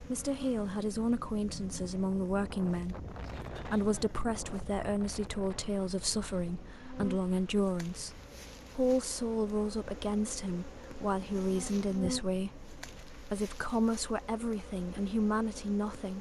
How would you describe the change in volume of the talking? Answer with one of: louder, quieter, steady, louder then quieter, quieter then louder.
steady.